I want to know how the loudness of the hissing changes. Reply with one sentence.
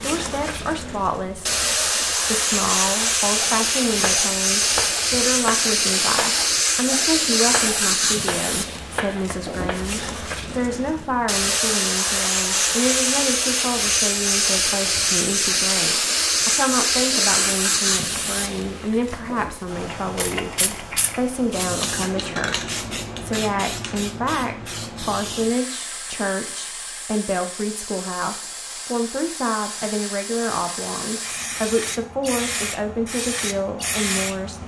The loudness of the hissing goes down.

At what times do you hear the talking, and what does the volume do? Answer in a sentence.
You can hear the talking from 0.0 to 34.6 s, at a steady volume.